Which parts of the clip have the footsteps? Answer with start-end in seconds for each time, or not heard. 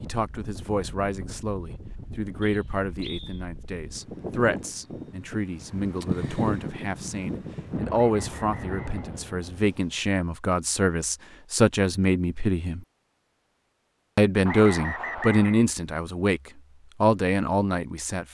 not heard.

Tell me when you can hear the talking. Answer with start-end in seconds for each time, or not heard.
0.0-12.8, 14.2-16.4, 17.0-18.2.